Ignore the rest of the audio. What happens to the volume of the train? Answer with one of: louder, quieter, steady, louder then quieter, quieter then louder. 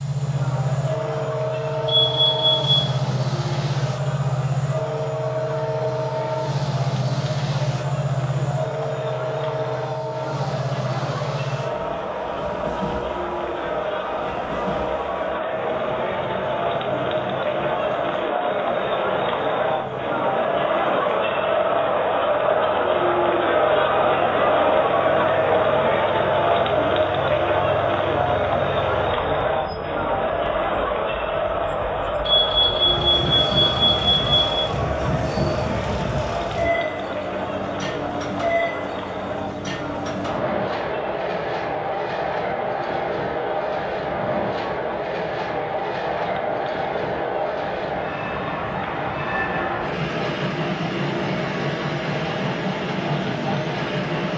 quieter then louder.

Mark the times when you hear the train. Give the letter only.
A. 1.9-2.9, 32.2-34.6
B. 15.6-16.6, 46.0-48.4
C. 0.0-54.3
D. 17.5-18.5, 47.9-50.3
C.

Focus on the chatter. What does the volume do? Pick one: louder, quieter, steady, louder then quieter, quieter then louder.
louder then quieter.